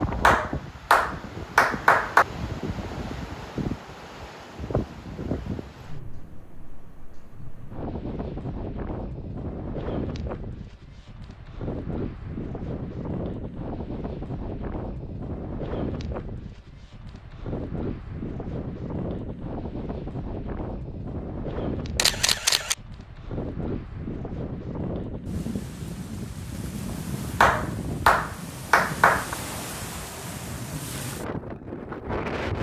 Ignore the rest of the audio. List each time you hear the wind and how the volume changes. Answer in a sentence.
You can hear the wind from 0.0 to 32.5 s, at a steady volume.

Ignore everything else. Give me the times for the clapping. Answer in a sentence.
You can hear the clapping from 0.2 to 2.2 s and from 27.4 to 29.4 s.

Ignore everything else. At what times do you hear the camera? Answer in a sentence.
You can hear the camera from 21.9 to 22.8 s.